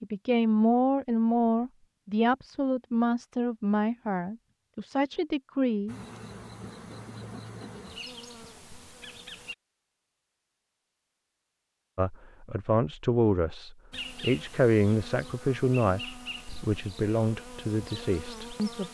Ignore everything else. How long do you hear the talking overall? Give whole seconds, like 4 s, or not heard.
13 s.